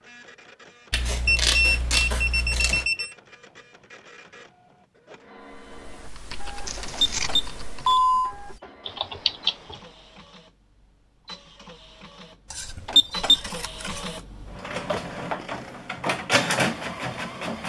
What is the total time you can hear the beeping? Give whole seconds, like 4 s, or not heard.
4 s.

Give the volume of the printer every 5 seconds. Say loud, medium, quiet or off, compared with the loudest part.
quiet, quiet, medium, loud.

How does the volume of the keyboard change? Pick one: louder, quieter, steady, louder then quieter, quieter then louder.
quieter then louder.